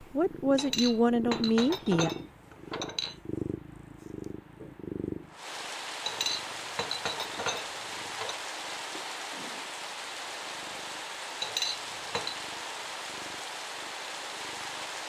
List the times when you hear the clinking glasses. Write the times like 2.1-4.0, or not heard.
0.6-3.1, 6.0-8.3, 11.4-12.3.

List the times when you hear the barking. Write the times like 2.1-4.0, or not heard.
not heard.